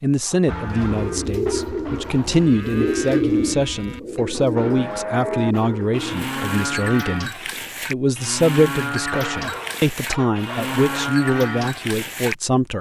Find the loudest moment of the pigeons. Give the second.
3 s.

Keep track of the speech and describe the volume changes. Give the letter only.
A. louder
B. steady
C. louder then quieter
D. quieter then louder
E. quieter
B.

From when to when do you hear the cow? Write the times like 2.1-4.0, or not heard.
0.5-12.3.